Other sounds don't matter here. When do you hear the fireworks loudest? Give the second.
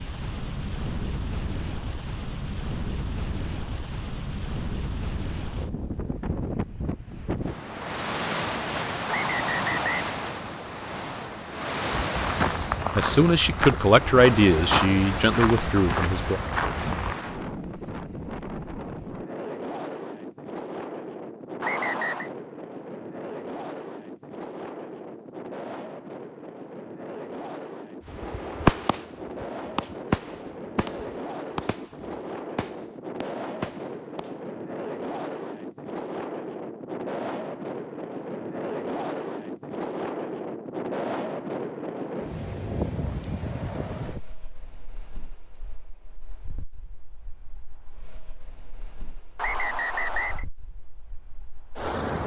29 s.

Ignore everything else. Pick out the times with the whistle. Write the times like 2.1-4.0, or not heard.
9.1-10.1, 21.6-22.3, 49.4-50.5.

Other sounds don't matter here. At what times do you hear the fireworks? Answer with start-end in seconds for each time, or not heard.
28.1-34.3.